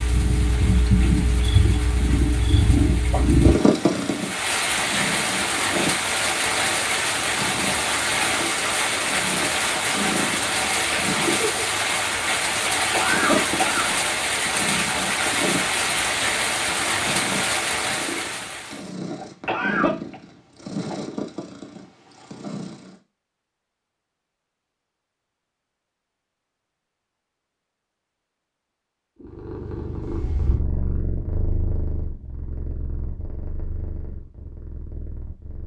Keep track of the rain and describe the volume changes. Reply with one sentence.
The loudness of the rain goes up.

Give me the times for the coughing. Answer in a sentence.
You can hear the coughing from 12.9 to 13.9 s and from 19.4 to 20.1 s.